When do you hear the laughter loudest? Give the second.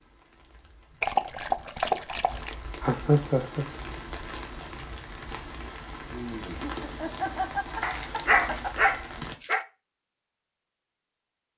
3 s.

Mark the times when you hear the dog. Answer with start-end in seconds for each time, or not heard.
1.0-2.5, 7.8-9.7.